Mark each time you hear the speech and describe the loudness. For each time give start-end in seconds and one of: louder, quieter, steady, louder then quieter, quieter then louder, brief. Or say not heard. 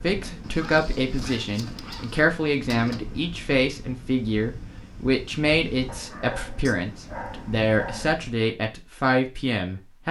0.0-10.0 steady.